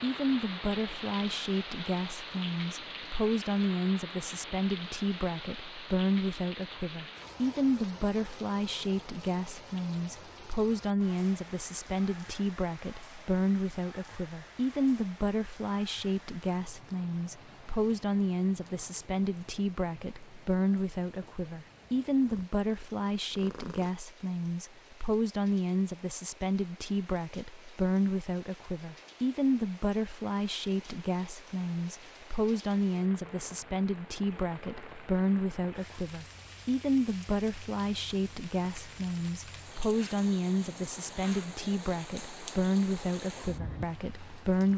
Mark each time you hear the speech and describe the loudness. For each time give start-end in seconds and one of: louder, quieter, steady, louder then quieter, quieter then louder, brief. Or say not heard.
0.0-44.7 steady.